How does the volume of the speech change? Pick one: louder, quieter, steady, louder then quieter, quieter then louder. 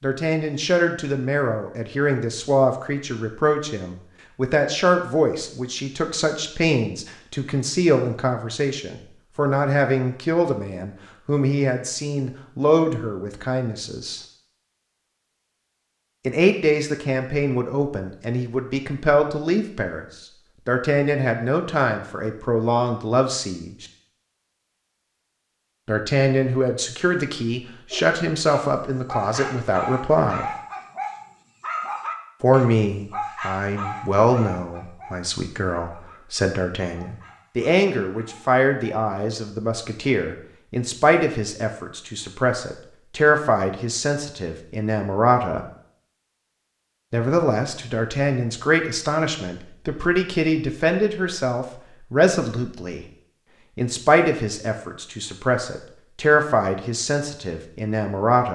steady.